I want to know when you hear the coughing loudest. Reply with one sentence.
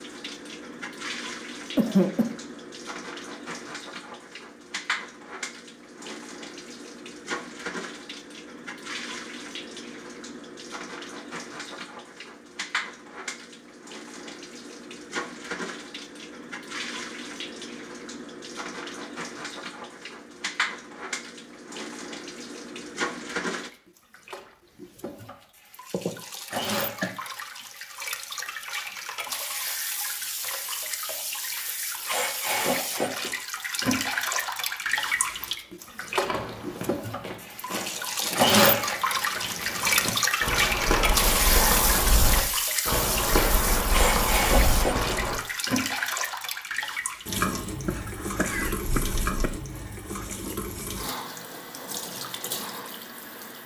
The volume of the coughing peaks at 2 seconds.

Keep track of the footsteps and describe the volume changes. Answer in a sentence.
The loudness of the footsteps goes up.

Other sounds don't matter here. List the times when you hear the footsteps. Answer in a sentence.
You can hear the footsteps from 36.2 to 45.4 s.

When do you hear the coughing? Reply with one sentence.
You can hear the coughing from 1.8 to 2.3 s, from 25.9 to 27.1 s and from 47.9 to 49.6 s.